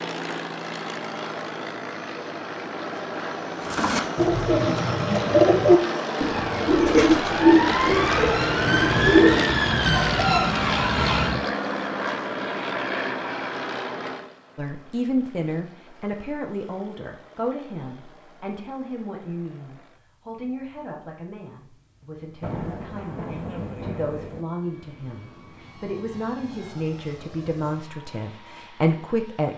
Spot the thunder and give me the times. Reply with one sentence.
The thunder can be heard from 8.0 to 11.5 s and from 22.4 to 24.4 s.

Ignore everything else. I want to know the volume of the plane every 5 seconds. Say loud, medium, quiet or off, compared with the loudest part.
medium, loud, loud, quiet, quiet, quiet.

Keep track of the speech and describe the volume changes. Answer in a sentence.
The volume of the speech goes down, then up.